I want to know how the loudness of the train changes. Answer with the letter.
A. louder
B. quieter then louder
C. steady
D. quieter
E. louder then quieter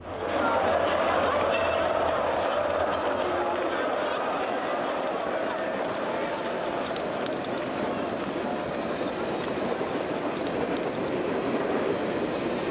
A.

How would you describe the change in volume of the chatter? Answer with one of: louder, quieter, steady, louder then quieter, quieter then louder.
quieter.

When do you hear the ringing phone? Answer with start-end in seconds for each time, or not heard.
not heard.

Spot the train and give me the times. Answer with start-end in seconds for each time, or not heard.
0.0-12.6.